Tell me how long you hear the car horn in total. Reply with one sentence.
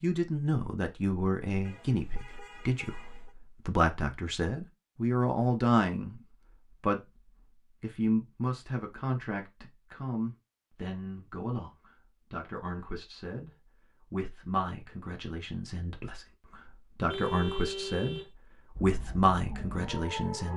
The car horn can be heard for 3 seconds in total.